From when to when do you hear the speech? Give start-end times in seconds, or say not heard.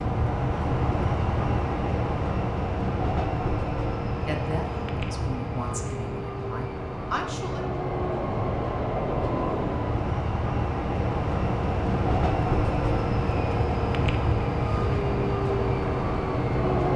4.2-7.7.